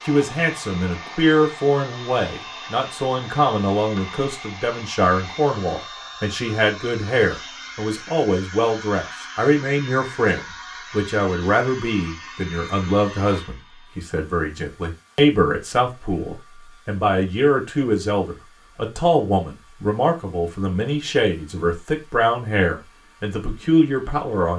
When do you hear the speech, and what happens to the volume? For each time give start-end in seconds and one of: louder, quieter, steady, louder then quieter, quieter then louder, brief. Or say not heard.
0.0-24.5 steady.